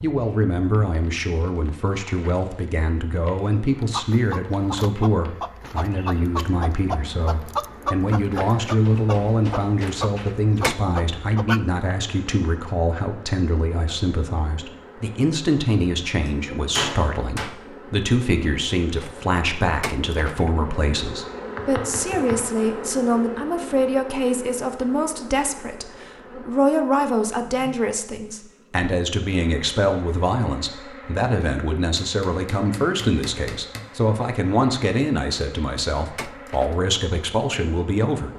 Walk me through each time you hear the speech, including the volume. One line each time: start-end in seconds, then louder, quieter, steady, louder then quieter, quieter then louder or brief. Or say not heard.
0.0-38.3 steady.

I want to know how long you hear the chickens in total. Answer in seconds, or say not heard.
8 s.